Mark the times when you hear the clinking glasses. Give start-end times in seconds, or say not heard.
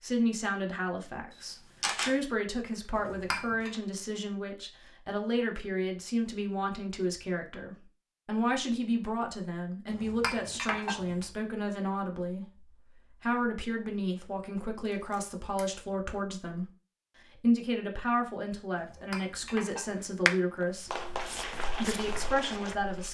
3.0-3.8, 9.8-11.2, 18.8-20.1.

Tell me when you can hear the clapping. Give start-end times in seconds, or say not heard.
20.2-23.0.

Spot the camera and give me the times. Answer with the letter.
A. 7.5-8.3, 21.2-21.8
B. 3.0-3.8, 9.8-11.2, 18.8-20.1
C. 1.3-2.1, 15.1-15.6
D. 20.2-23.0
C.